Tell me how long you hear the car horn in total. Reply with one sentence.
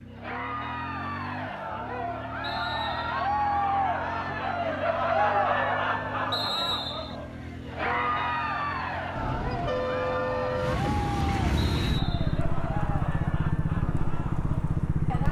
You can hear the car horn for 2 seconds altogether.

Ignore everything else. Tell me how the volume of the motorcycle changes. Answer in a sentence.
The loudness of the motorcycle goes up.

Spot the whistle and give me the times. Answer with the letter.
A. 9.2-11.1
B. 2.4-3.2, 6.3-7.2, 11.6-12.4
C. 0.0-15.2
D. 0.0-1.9
B.